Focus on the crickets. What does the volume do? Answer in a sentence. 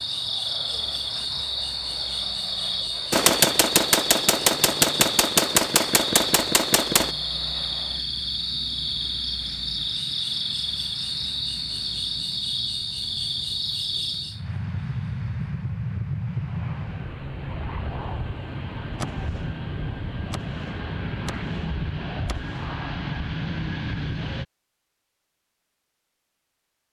The loudness of the crickets stays about the same.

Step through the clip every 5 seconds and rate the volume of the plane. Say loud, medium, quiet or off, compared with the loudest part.
quiet, quiet, medium, loud, loud, off.